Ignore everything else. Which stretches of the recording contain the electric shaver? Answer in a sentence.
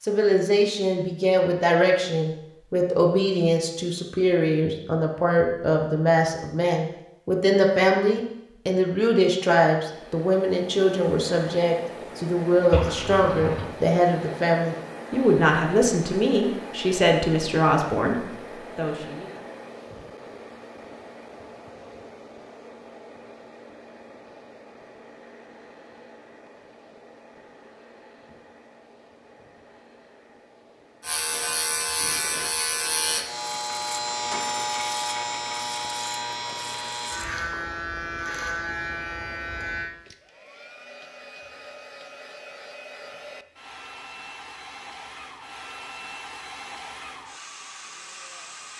The electric shaver can be heard from 31.0 to 39.9 s.